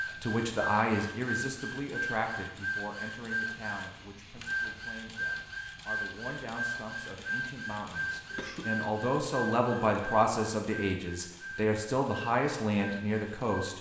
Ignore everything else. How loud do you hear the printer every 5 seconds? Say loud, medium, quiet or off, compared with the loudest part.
loud, loud, medium.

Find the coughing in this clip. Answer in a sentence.
You can hear the coughing from 8.3 to 8.8 s.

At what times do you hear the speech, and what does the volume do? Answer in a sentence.
The speech can be heard from 0.2 to 13.7 s, getting quieter then louder.